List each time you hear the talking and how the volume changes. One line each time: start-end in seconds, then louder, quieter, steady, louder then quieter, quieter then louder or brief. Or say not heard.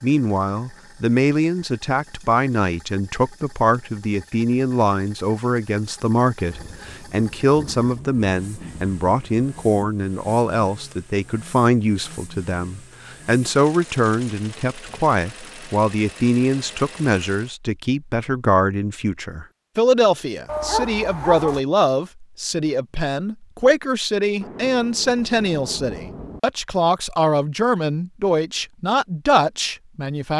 0.0-30.3 steady.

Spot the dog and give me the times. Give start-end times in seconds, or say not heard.
20.4-21.6.